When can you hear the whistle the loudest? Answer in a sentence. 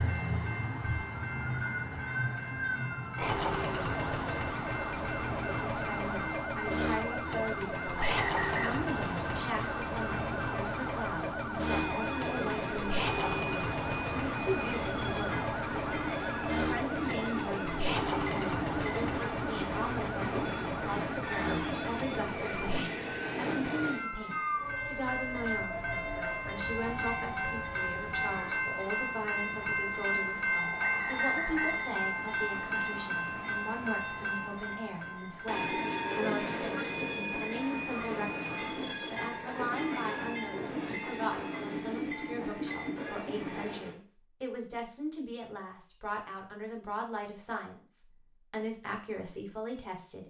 The loudest moment of the whistle is at 8 seconds.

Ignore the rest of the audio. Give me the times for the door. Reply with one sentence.
You can't hear the door here.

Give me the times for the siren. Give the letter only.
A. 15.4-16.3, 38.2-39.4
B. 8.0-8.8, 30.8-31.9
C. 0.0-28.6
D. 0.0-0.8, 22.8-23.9
C.